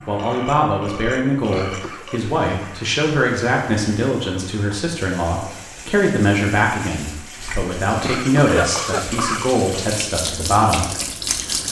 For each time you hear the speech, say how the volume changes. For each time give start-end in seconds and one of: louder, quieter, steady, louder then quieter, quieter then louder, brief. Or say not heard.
0.1-10.8 steady.